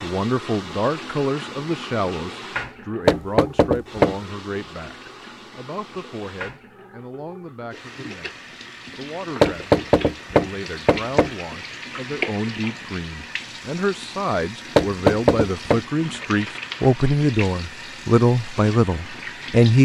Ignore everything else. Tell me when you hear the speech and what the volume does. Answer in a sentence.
You can hear the speech from 0.0 to 19.7 s, getting quieter then louder.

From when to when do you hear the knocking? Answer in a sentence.
The knocking can be heard from 3.0 to 4.2 s, from 9.4 to 11.3 s and from 14.8 to 15.8 s.